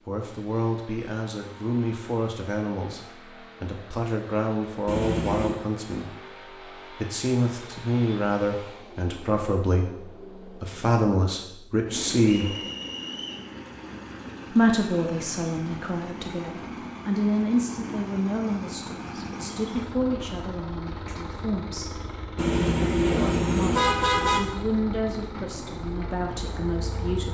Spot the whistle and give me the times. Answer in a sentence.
The whistle can be heard from 12.3 to 13.4 s.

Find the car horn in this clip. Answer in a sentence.
The car horn can be heard from 4.8 to 5.5 s and from 22.4 to 24.4 s.